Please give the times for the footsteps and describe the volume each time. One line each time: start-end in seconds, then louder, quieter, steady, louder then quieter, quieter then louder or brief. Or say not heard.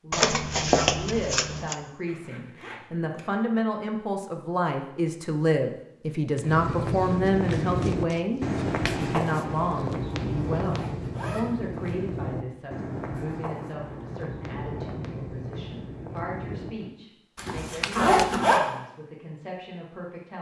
6.3-16.9 quieter.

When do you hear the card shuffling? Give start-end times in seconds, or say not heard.
0.1-1.8, 7.4-9.0, 17.6-18.4.